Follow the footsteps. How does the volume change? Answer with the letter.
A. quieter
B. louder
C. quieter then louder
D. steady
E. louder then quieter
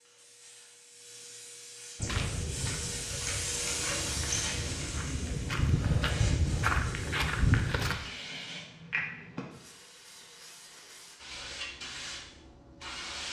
B.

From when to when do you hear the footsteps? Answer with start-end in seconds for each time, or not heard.
1.9-8.0.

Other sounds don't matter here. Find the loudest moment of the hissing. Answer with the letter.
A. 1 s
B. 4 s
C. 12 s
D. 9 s
B.